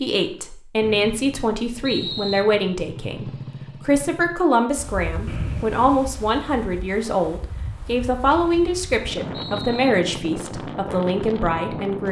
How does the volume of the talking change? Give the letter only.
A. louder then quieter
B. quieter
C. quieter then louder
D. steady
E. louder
D.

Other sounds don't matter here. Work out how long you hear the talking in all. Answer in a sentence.
The talking can be heard for 12 seconds in total.